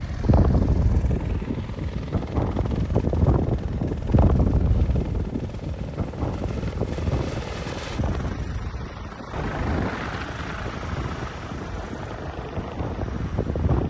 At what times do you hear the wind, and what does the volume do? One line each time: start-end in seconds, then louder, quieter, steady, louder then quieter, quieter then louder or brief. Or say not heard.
0.0-13.8 quieter.